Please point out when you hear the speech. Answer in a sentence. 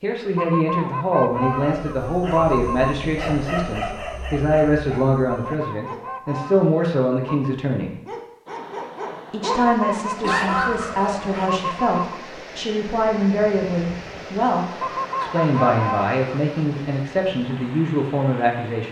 The speech can be heard from 0.0 to 8.0 s and from 9.3 to 18.8 s.